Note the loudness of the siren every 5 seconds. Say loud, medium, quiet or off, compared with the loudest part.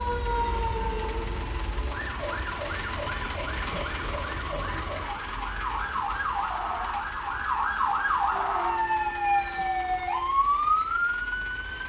medium, loud, loud.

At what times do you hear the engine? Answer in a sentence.
You can hear the engine from 0.0 to 11.8 s.